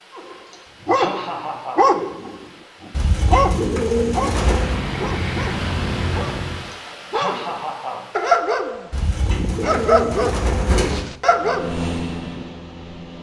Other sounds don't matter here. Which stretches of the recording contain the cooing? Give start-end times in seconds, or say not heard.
2.9-4.8, 8.9-11.1.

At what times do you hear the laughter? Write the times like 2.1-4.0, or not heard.
0.5-1.9, 6.7-8.1.